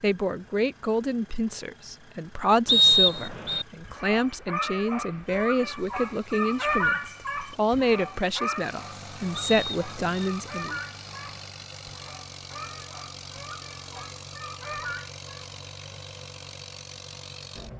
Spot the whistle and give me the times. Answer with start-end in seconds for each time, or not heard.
2.6-3.6, 9.3-10.2.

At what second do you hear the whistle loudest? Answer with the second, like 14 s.
3 s.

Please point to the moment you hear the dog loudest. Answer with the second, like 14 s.
7 s.